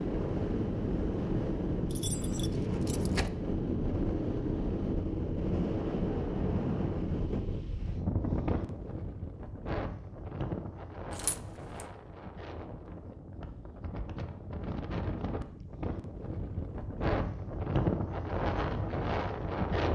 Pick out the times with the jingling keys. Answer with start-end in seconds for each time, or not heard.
1.9-3.3, 11.1-11.8.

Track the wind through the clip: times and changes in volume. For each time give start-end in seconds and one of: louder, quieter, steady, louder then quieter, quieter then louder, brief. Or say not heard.
0.0-19.9 quieter then louder.